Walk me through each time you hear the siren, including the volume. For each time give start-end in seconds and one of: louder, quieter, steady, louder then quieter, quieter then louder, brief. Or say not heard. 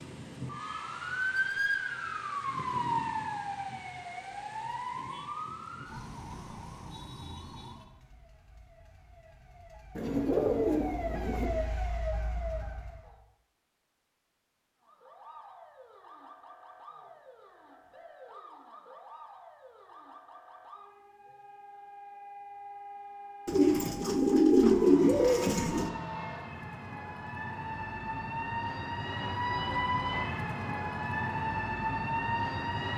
0.0-13.2 quieter then louder
14.8-32.9 louder.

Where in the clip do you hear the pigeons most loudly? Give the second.
25 s.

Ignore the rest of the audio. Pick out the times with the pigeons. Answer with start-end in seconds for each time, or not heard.
9.9-11.5, 23.4-25.9.